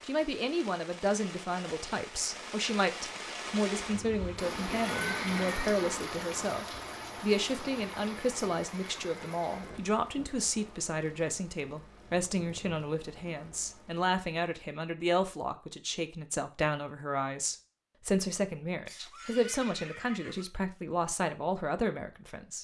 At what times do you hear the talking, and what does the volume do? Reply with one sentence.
The talking can be heard from 0.0 to 22.5 s, at a steady volume.